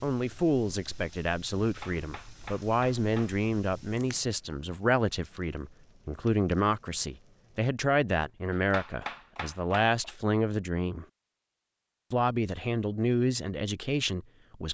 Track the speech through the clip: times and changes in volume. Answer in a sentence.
The speech can be heard from 0.0 to 11.1 s, at a steady volume; and briefly from 12.1 to 14.6 s.